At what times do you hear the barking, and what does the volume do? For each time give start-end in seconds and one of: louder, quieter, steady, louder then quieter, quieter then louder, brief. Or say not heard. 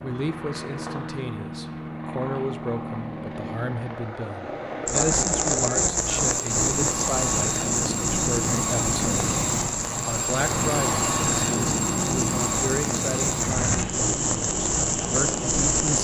not heard.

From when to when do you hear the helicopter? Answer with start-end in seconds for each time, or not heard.
0.0-15.9.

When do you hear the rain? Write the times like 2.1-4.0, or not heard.
4.8-15.9.